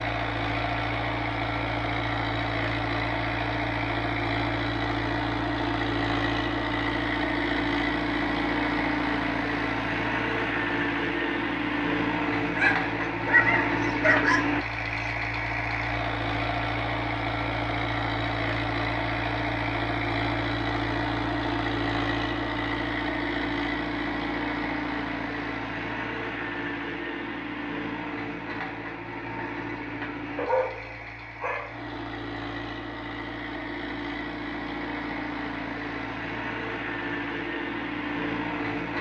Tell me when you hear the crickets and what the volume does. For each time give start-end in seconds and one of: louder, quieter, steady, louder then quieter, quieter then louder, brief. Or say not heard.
not heard.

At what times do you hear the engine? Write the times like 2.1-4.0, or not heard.
0.0-38.9.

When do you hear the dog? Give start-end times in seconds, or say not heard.
12.6-15.1, 30.4-31.8.